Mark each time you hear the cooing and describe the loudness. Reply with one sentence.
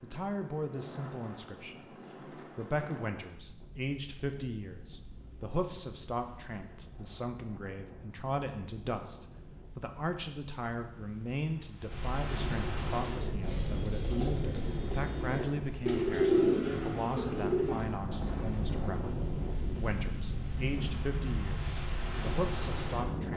You can hear the cooing from 13.0 to 18.8 s, getting louder then quieter.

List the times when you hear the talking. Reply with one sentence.
You can hear the talking from 0.0 to 23.3 s.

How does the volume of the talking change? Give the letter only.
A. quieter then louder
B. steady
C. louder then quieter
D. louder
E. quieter
B.